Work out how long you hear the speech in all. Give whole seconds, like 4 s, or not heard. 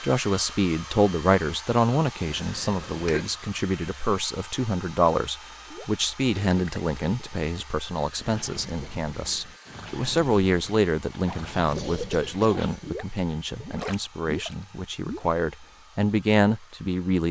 17 s.